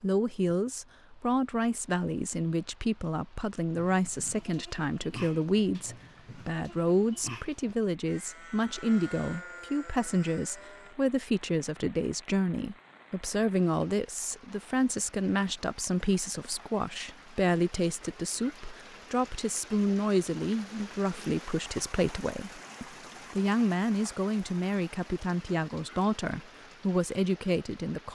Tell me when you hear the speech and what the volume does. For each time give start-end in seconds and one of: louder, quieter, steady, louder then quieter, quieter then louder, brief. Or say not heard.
0.0-28.1 steady.